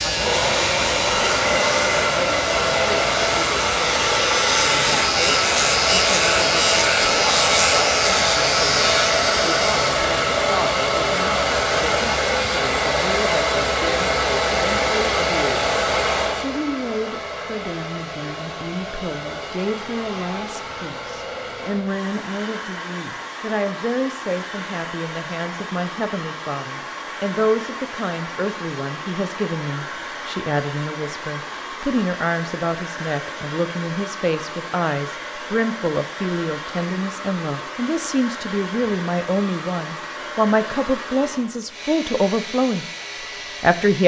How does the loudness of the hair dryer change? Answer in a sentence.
The loudness of the hair dryer goes down.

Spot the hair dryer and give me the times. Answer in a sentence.
You can hear the hair dryer from 0.0 to 44.0 s.